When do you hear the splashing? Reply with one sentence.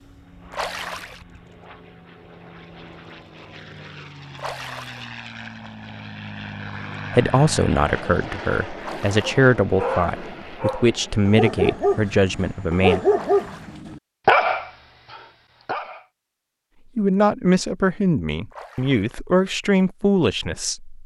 The splashing can be heard from 0.5 to 1.2 s, from 4.3 to 5.1 s, from 8.8 to 9.3 s, from 13.1 to 13.8 s and from 18.5 to 19.1 s.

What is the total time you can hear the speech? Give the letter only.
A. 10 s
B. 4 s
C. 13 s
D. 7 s
A.